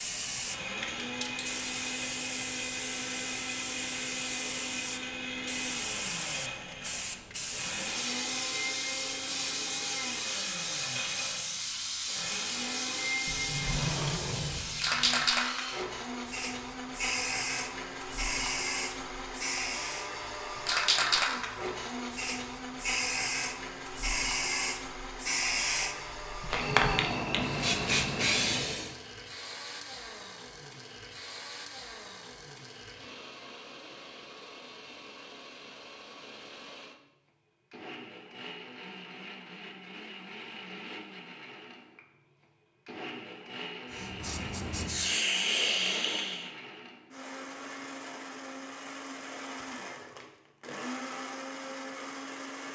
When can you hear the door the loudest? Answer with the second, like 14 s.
14 s.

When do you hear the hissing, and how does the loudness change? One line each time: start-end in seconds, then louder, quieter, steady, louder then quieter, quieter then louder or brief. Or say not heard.
0.0-28.9 louder
43.9-46.5 brief.